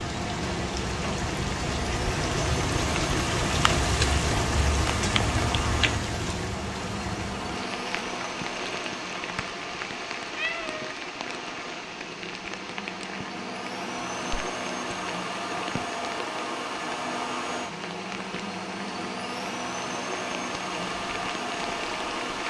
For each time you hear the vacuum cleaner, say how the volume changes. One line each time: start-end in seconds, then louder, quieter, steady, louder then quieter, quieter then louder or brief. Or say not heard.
0.0-22.4 quieter then louder.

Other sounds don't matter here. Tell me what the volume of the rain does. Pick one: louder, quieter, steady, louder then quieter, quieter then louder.
quieter.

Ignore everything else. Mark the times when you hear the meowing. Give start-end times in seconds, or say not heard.
10.3-10.9.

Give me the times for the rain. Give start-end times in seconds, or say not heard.
0.0-22.4.